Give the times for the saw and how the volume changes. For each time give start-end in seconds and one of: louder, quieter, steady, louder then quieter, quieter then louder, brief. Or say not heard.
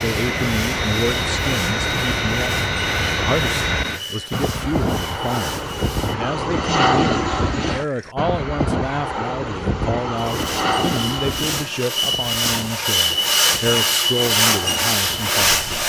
0.0-6.2 steady
10.2-15.8 louder.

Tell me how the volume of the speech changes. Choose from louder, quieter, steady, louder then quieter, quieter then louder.
steady.